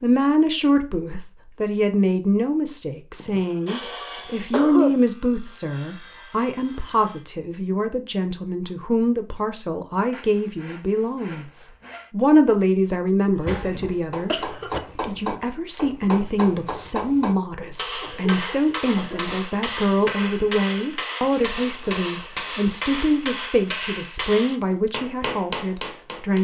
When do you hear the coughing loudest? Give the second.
5 s.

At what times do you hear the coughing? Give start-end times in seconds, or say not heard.
3.2-5.0, 13.4-14.8, 18.0-19.4.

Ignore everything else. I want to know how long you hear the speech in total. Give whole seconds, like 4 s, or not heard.
26 s.